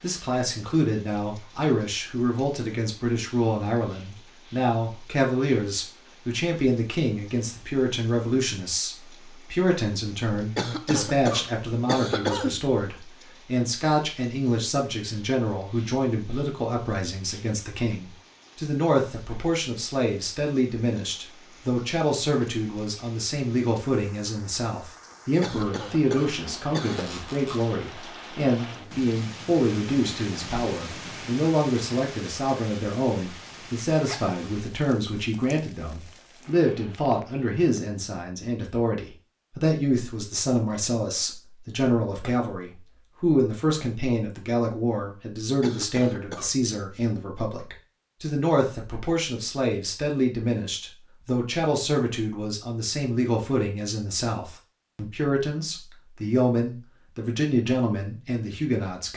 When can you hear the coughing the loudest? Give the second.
12 s.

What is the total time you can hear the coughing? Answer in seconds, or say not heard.
5 s.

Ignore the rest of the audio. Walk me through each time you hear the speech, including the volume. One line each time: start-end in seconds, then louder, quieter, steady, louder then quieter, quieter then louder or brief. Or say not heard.
0.0-59.1 steady.